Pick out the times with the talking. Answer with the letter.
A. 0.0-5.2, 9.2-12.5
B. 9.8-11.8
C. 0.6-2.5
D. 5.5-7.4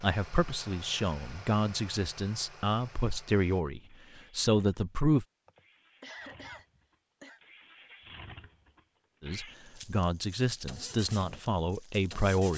A.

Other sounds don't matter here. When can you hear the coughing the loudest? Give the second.
6 s.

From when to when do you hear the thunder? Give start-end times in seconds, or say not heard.
not heard.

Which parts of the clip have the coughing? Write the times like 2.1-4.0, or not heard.
5.5-7.4.